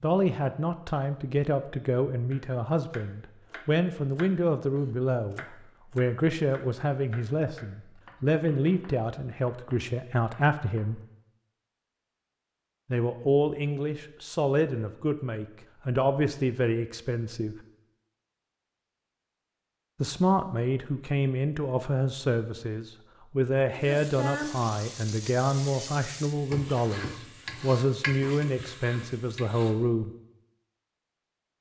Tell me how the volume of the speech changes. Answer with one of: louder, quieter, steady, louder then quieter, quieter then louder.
steady.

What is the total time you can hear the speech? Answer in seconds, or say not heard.
26 s.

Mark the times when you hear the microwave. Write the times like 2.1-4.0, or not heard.
not heard.